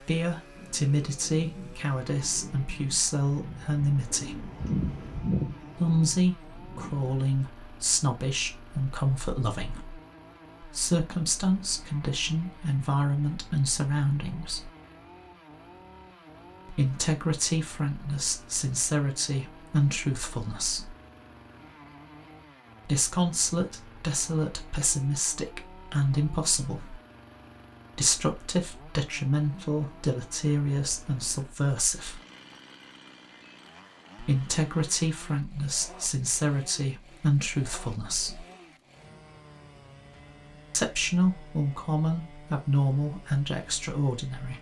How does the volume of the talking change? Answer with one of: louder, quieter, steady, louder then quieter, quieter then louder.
steady.